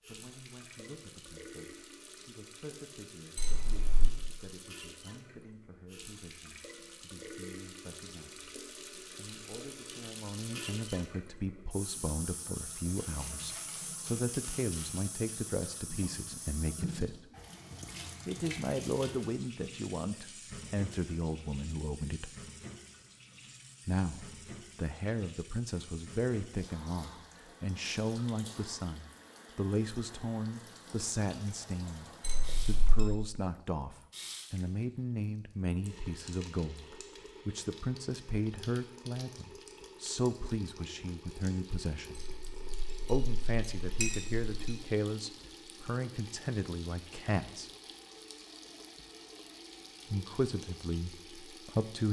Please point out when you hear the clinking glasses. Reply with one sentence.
The clinking glasses can be heard from 3.4 to 4.1 s, from 32.2 to 33.1 s and from 42.1 to 44.8 s.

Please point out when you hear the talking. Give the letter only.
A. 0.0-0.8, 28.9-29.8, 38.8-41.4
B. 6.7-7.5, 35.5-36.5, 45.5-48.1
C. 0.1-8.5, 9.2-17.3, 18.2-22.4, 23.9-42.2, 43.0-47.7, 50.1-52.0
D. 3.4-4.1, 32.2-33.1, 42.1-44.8
C.